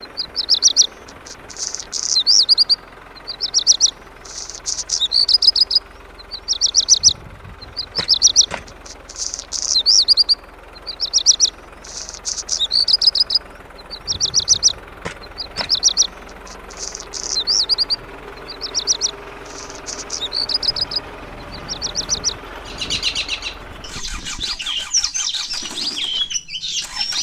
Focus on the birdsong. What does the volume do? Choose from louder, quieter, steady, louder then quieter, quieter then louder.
quieter.